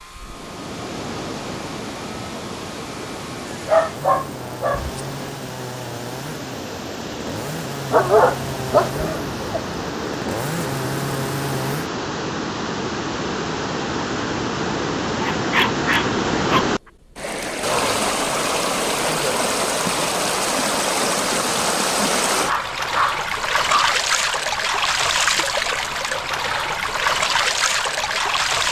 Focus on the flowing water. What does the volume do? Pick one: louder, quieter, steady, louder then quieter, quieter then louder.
louder.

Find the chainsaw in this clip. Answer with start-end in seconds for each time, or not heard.
0.0-11.9.